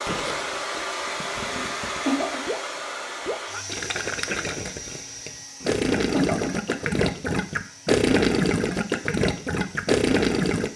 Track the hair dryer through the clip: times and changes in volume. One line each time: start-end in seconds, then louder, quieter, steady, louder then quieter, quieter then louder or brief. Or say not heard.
0.0-10.7 quieter.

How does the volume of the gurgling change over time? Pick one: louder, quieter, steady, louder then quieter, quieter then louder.
louder.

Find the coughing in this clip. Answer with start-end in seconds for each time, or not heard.
1.5-2.4, 5.6-7.3.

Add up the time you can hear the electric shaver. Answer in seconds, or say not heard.
not heard.